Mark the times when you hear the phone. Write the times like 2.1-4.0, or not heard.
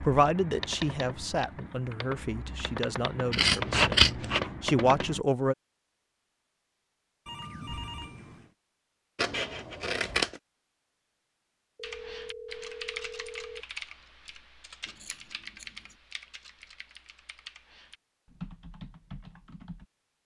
7.2-8.5, 11.8-13.7.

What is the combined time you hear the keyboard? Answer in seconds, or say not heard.
13 s.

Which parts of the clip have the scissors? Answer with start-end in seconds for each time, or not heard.
3.3-4.4, 9.2-10.4, 14.8-15.9.